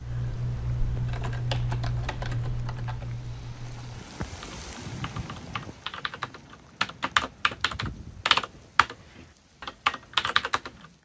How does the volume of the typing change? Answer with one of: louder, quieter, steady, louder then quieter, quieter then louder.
quieter then louder.